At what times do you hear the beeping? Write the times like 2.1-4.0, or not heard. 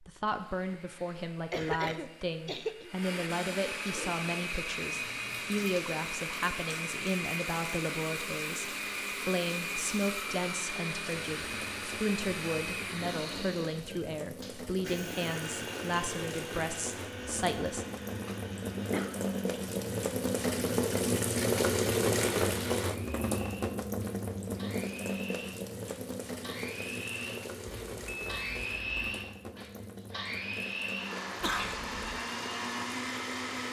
27.6-29.1.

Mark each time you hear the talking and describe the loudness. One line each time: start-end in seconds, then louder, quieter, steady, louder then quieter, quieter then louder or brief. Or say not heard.
0.0-17.9 steady.